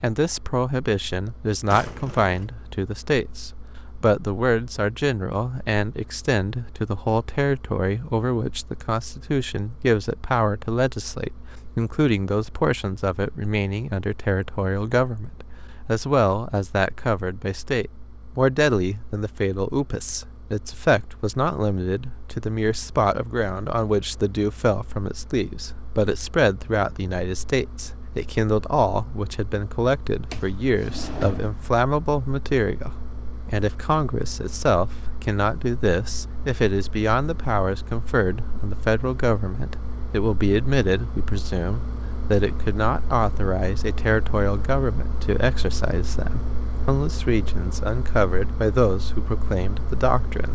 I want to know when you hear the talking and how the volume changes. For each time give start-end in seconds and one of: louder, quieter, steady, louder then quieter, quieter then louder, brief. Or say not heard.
0.0-50.5 steady.